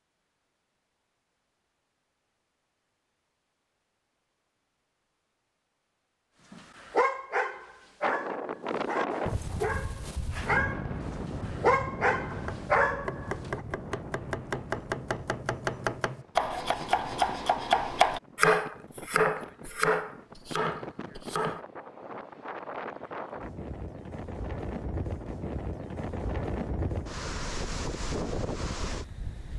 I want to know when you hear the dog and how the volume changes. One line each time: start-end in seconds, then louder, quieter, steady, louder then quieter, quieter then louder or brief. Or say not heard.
6.5-13.6 quieter then louder.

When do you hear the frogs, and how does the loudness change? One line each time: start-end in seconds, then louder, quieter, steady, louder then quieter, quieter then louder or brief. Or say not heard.
not heard.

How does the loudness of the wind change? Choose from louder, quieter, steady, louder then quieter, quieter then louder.
quieter then louder.